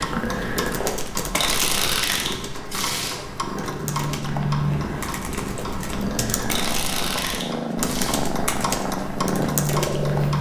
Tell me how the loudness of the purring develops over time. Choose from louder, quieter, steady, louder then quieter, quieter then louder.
louder.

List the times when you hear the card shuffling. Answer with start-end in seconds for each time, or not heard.
1.3-3.2, 6.5-8.2.